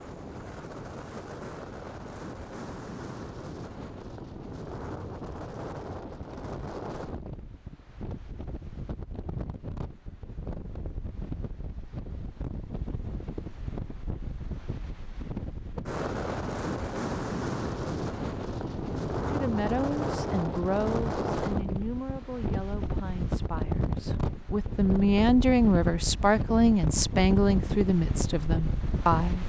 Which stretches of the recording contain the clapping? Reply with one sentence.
The clapping can't be heard in this clip.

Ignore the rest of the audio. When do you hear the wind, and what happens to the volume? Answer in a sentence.
You can hear the wind from 0.0 to 29.4 s, getting louder.